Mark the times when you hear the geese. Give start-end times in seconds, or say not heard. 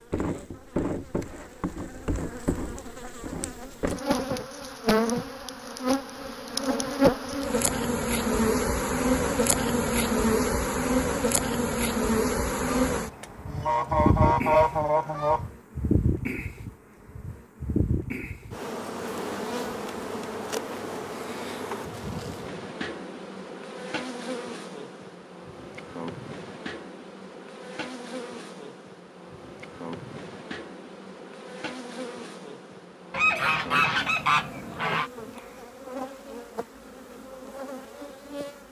12.9-15.4, 33.1-35.1.